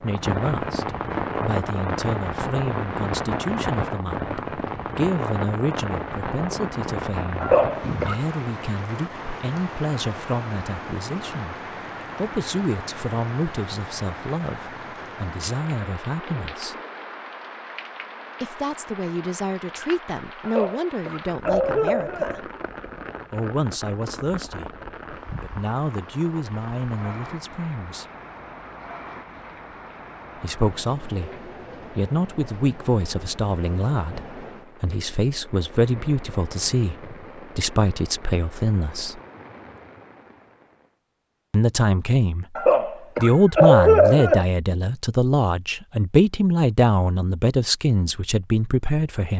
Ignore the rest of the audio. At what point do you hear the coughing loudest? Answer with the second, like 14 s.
44 s.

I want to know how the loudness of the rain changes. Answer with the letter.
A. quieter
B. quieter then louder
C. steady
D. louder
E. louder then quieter
A.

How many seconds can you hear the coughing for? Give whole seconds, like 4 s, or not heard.
5 s.